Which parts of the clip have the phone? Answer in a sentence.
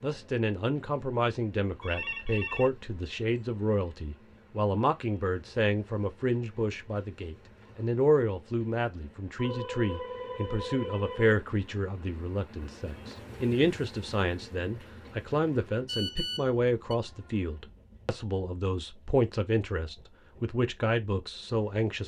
The phone can be heard from 1.8 to 2.8 s, from 9.3 to 11.3 s and from 15.8 to 16.9 s.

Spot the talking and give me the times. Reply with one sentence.
The talking can be heard from 0.0 to 22.0 s.